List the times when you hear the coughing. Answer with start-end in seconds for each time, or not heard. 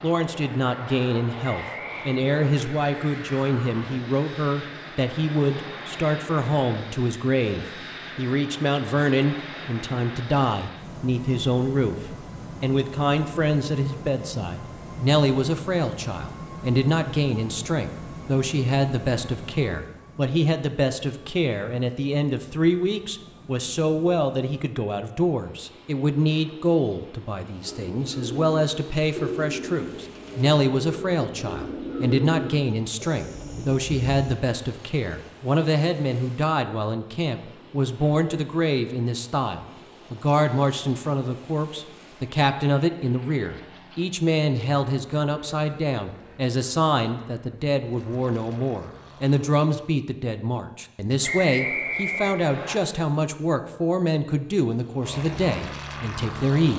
not heard.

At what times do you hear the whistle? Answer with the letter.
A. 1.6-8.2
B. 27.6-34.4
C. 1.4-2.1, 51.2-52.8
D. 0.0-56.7
C.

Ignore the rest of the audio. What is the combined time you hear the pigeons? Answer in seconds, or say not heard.
7 s.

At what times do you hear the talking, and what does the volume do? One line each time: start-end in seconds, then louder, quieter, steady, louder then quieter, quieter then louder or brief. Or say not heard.
0.0-56.7 steady.